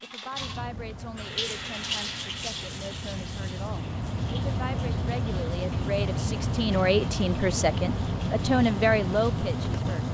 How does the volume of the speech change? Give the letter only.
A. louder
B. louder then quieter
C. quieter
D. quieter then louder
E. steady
A.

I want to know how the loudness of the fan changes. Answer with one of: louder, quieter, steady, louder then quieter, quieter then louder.
louder.